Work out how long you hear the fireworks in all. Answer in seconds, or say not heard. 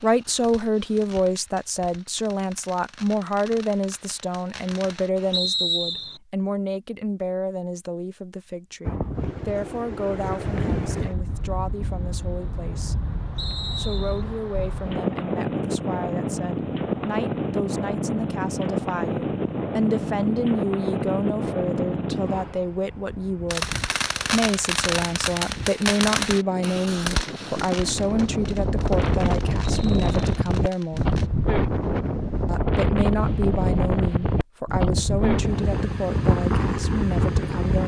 13 s.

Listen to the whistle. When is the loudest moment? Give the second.
6 s.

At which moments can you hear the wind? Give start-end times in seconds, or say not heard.
8.8-37.8.